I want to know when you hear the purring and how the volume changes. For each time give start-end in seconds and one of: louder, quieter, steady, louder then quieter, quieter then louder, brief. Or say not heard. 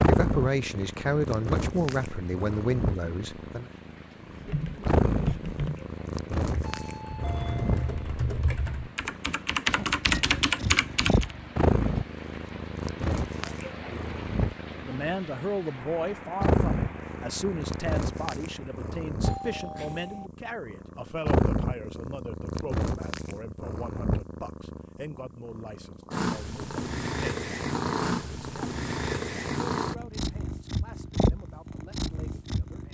0.0-32.9 steady.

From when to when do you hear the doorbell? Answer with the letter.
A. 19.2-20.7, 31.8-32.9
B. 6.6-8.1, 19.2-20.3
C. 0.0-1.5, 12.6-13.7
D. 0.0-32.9
B.